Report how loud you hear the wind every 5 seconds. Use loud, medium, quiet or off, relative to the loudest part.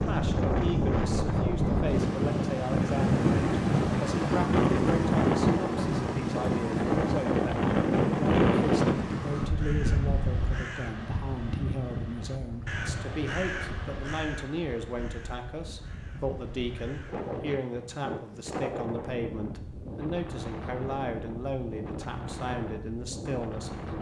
loud, loud, quiet, quiet, quiet.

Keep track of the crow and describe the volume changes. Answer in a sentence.
The volume of the crow goes down.